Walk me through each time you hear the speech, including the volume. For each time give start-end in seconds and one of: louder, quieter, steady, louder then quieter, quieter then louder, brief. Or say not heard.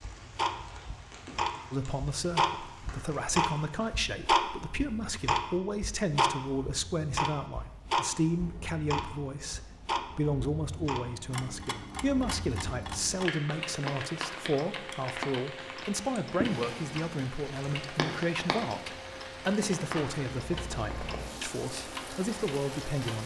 1.7-23.2 steady.